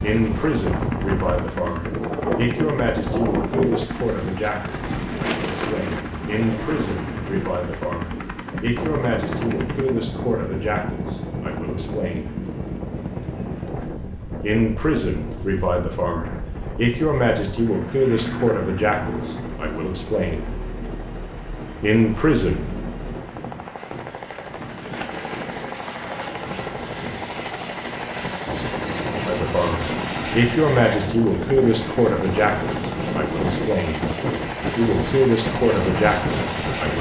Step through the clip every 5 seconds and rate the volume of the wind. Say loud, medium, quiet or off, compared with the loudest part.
loud, loud, medium, medium, medium, medium, loud, loud.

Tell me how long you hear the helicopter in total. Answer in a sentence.
The helicopter can be heard for 37 seconds in total.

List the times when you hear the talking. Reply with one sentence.
The talking can be heard from 0.0 to 12.3 s, from 14.4 to 20.5 s, from 21.8 to 22.6 s, from 29.2 to 34.0 s and from 34.8 to 36.9 s.